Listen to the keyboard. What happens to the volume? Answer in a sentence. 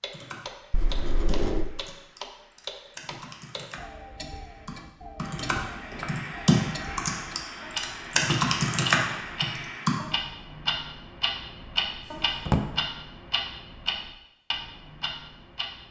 The volume of the keyboard goes up.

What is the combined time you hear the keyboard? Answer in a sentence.
The keyboard can be heard for 10 seconds in total.